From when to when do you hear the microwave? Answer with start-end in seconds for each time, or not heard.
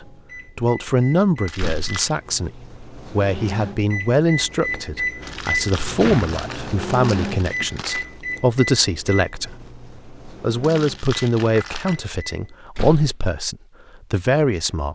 0.0-12.6.